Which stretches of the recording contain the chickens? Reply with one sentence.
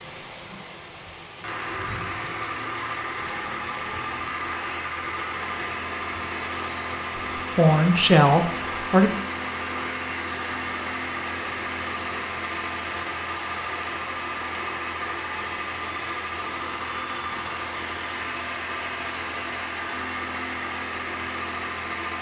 You can't hear the chickens here.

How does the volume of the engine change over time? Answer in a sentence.
The loudness of the engine stays about the same.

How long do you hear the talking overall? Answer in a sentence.
You can hear the talking for 2 seconds altogether.